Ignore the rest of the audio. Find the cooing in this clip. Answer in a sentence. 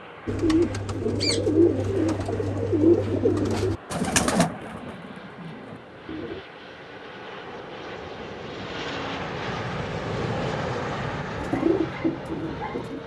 The cooing can be heard from 0.2 to 6.5 s and from 11.4 to 13.0 s.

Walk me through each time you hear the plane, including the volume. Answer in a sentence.
You can hear the plane from 0.0 to 13.0 s, getting louder.